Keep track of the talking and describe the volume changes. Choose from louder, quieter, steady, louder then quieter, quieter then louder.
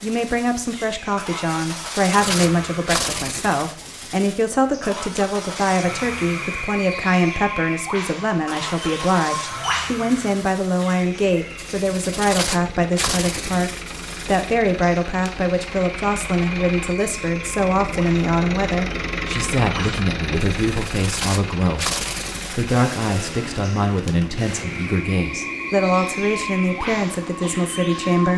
steady.